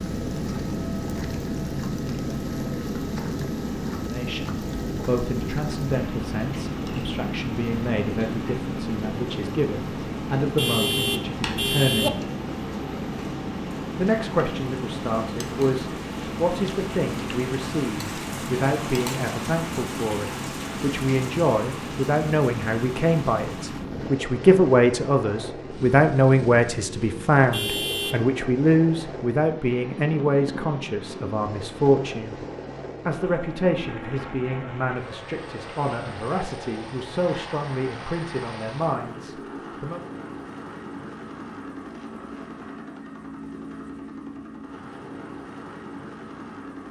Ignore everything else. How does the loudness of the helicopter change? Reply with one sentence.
The volume of the helicopter goes down.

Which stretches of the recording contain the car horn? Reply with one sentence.
The car horn can be heard from 10.6 to 12.1 s and from 27.5 to 28.4 s.